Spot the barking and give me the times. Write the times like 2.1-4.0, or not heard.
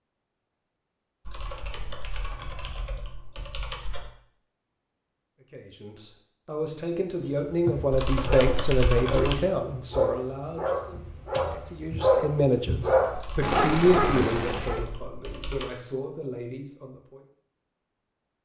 7.2-14.8.